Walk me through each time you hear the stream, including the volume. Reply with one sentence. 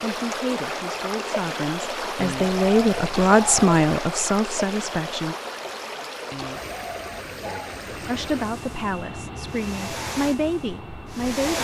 The stream can be heard from 0.0 to 11.5 s, getting quieter.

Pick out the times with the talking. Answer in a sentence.
The talking can be heard from 0.0 to 5.3 s and from 8.1 to 11.5 s.